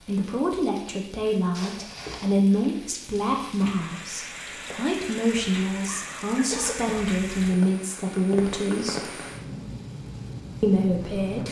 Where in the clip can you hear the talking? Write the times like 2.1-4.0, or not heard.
0.1-9.2, 10.6-11.4.